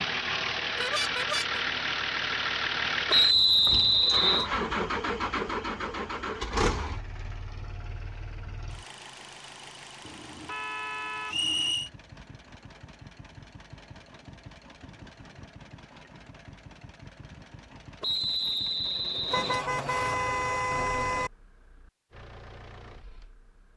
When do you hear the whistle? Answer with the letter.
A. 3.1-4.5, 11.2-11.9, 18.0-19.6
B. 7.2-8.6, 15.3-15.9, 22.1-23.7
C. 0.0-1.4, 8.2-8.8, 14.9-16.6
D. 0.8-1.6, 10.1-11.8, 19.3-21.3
A.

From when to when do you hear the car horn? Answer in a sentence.
The car horn can be heard from 0.8 to 1.6 s, from 10.1 to 11.8 s and from 19.3 to 21.3 s.